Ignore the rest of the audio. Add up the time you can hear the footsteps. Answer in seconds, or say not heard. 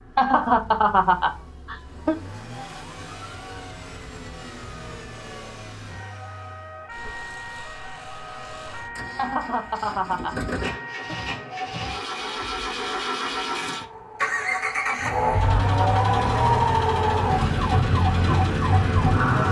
not heard.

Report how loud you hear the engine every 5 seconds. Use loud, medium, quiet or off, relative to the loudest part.
quiet, quiet, loud, loud.